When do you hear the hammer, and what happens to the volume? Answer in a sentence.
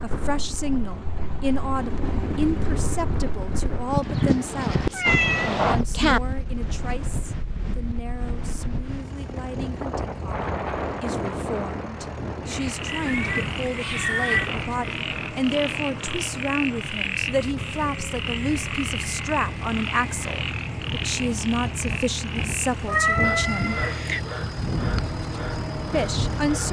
You can't hear the hammer here.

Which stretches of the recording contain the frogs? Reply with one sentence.
You can hear the frogs from 12.4 to 26.6 s.